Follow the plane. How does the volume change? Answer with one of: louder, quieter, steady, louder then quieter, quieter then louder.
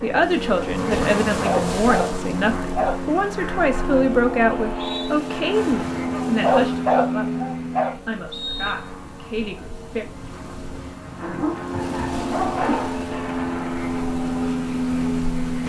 quieter then louder.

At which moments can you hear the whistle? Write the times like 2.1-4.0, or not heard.
4.5-5.1, 8.3-8.9.